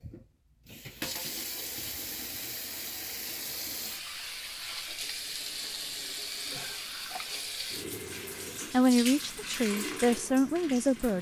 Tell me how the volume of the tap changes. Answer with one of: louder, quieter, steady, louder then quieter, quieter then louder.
steady.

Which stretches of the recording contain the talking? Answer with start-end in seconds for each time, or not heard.
8.7-11.1.